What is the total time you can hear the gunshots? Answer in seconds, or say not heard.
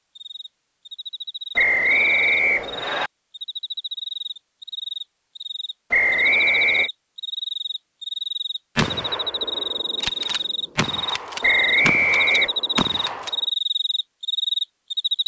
5 s.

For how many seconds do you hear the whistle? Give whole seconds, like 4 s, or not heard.
4 s.